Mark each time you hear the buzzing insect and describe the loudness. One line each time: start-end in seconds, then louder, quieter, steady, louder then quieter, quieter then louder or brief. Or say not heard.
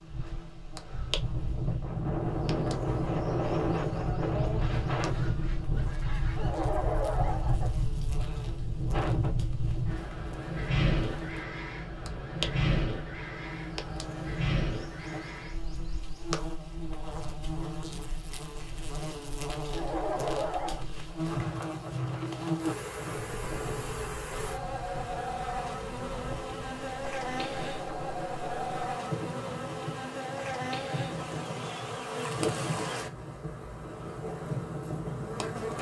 0.1-35.7 louder.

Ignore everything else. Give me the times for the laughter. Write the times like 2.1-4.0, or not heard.
6.3-7.8, 19.7-20.9.